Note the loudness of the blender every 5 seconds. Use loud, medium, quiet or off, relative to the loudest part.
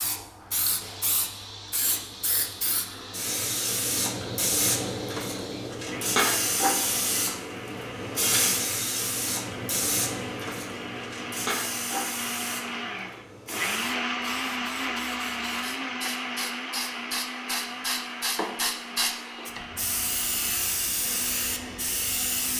medium, medium, loud, loud, medium.